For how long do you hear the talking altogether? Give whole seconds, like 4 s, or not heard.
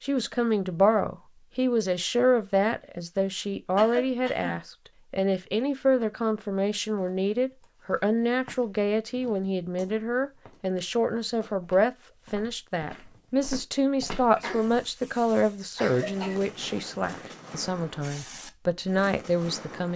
20 s.